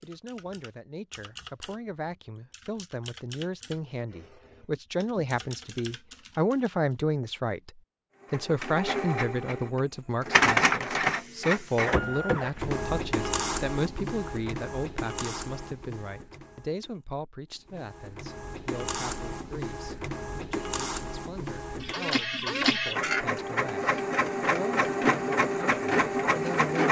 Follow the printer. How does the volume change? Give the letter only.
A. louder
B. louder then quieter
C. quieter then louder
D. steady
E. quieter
C.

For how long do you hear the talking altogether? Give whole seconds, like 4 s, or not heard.
27 s.